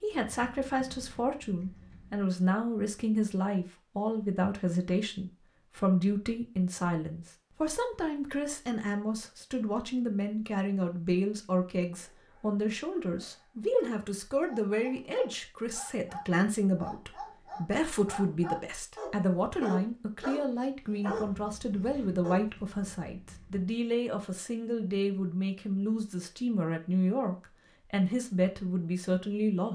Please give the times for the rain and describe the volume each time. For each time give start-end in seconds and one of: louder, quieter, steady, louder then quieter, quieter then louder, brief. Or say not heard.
not heard.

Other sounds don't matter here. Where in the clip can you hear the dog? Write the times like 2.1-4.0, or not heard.
11.9-22.4.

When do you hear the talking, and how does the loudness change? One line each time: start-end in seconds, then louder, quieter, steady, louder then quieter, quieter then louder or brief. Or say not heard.
0.0-29.7 steady.